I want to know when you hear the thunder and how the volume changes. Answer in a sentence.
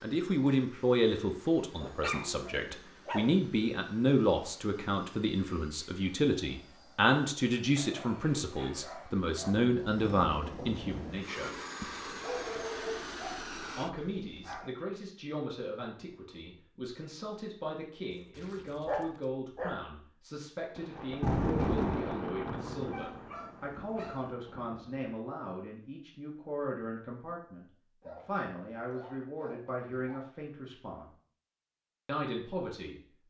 The thunder can be heard briefly from 9.2 to 11.2 s; and from 20.8 to 25.1 s, getting quieter.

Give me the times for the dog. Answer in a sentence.
You can hear the dog from 1.8 to 3.4 s, from 7.8 to 9.6 s, from 11.8 to 14.7 s, from 18.1 to 19.8 s, from 22.9 to 24.2 s and from 28.0 to 30.2 s.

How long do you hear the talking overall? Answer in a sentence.
The talking can be heard for 30 seconds in total.